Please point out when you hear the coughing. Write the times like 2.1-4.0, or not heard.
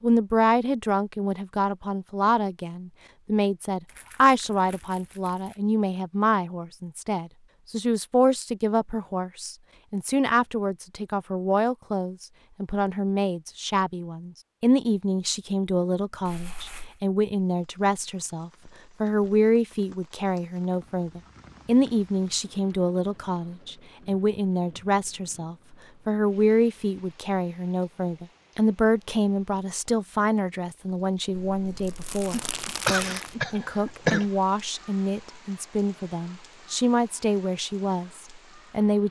32.3-34.2.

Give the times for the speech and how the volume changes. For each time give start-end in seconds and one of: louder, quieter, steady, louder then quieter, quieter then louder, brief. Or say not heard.
0.0-39.0 steady.